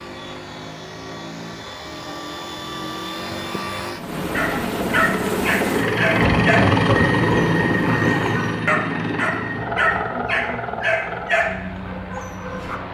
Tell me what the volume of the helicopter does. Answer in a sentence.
The loudness of the helicopter goes up, then down.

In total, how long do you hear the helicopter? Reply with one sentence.
You can hear the helicopter for 13 seconds altogether.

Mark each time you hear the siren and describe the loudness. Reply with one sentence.
The siren can't be heard in this clip.